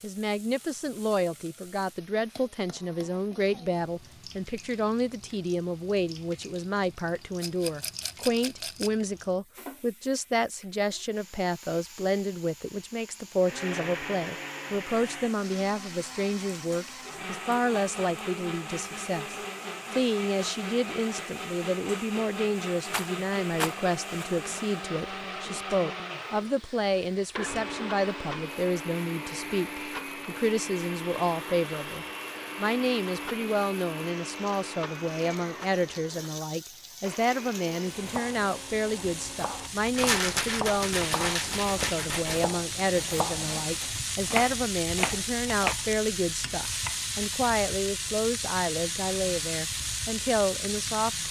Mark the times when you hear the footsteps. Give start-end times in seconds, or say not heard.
not heard.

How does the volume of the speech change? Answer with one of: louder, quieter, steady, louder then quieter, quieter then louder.
steady.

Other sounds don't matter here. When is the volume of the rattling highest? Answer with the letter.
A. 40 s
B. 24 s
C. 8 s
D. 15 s
A.